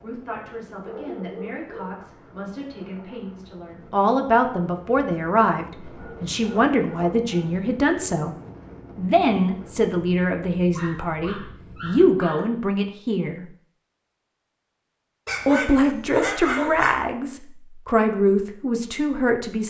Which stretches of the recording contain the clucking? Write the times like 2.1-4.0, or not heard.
not heard.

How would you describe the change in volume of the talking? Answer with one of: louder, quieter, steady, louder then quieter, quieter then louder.
louder.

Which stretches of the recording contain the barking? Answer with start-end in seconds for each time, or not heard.
0.8-1.9, 6.0-7.7, 10.8-12.5, 15.2-17.1.